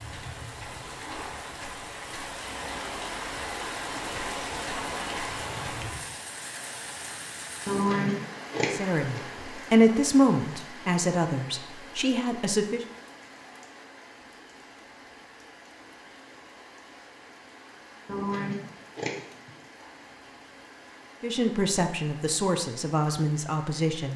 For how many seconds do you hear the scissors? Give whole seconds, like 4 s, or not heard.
3 s.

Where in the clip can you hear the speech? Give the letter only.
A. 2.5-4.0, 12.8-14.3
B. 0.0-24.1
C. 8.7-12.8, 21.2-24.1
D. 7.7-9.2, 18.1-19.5
C.